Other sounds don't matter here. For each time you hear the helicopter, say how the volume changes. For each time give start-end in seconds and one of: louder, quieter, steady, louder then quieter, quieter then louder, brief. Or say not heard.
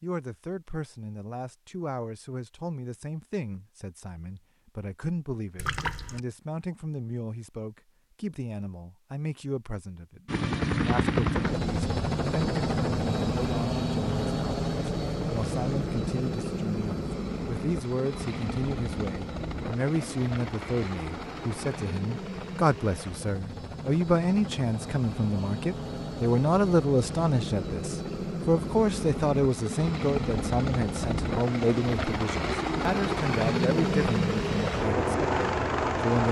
10.2-36.2 quieter then louder.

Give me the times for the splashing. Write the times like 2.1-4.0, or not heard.
5.5-6.2.